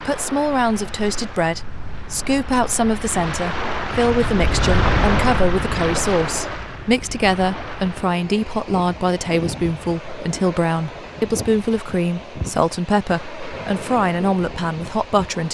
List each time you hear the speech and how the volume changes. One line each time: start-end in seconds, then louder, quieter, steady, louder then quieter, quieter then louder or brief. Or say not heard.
0.0-15.4 steady.